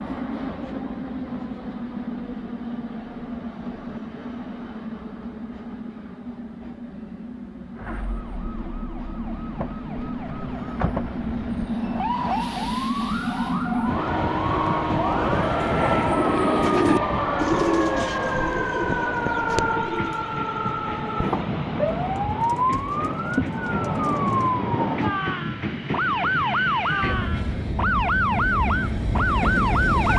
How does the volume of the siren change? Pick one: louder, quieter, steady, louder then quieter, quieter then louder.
louder.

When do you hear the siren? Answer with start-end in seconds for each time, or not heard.
7.8-30.1.